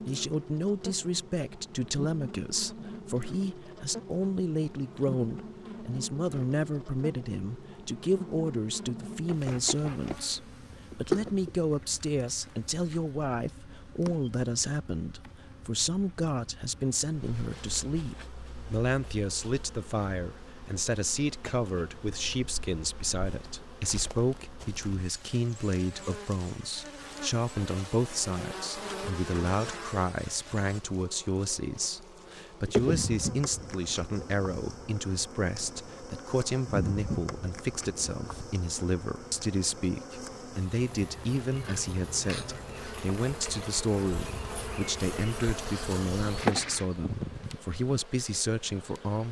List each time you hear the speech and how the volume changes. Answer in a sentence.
The speech can be heard from 0.1 to 49.2 s, at a steady volume.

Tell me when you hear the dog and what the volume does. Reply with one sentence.
You can't hear the dog here.